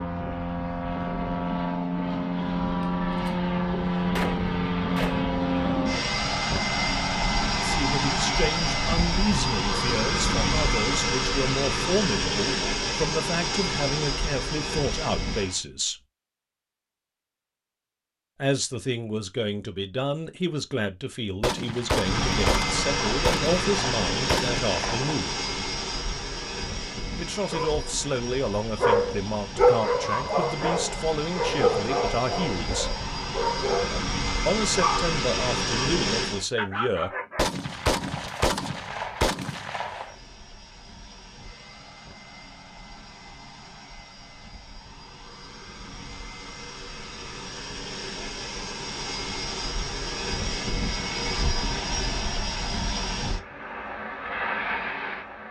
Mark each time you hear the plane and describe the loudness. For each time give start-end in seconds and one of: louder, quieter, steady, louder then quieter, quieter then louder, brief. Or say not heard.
0.0-15.6 steady
21.9-36.5 quieter then louder
40.0-55.4 louder.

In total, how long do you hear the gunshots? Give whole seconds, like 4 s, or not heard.
8 s.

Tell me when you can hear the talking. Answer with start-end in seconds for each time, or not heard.
7.6-16.0, 18.4-25.4, 27.1-32.9, 34.5-37.1.